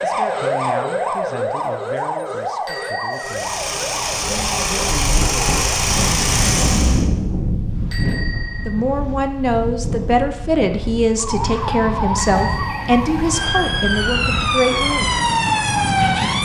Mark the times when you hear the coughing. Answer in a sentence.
The coughing can't be heard in this clip.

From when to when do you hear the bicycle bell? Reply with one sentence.
The bicycle bell can be heard from 2.6 to 3.4 s, from 7.9 to 8.8 s and from 12.2 to 13.0 s.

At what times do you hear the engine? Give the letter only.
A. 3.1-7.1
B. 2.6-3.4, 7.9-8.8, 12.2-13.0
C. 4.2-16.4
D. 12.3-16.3
A.